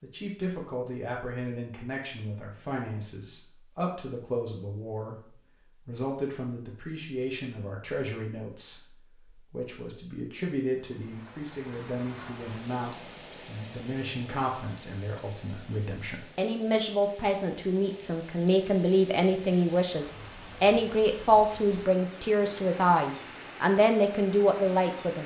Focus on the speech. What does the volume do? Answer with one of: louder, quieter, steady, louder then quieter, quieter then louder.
louder.